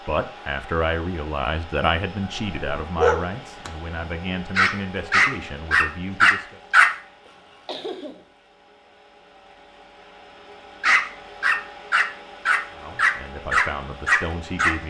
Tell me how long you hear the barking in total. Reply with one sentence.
The barking can be heard for 8 seconds in total.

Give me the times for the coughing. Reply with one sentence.
The coughing can be heard from 7.2 to 8.2 s.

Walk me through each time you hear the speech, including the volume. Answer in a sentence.
You can hear the speech from 0.1 to 6.6 s, getting quieter; and briefly from 12.7 to 14.8 s.